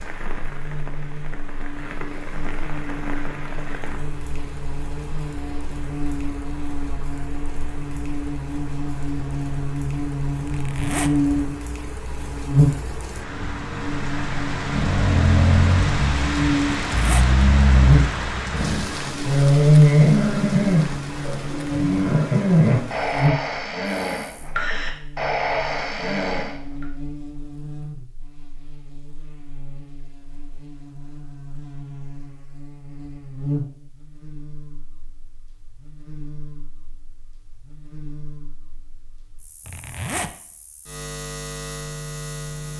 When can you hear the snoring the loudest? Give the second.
20 s.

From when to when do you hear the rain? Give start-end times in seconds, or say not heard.
0.0-23.3.